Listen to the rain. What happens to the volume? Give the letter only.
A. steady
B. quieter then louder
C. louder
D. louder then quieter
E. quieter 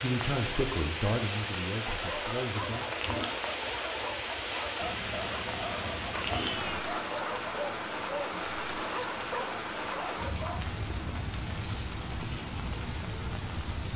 A.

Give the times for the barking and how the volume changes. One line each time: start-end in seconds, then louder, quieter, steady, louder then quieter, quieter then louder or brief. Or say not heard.
1.9-10.7 steady.